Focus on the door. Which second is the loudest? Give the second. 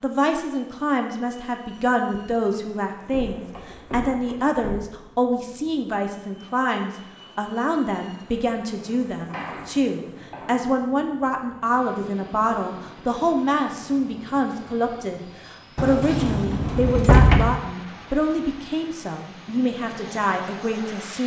17 s.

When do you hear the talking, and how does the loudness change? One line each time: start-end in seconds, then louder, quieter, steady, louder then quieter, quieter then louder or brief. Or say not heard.
0.0-21.2 steady.